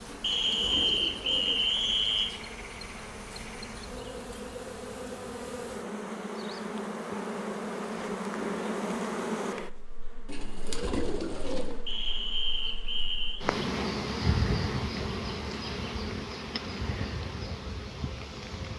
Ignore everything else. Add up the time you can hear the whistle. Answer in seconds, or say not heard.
4 s.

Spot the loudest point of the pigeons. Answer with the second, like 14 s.
11 s.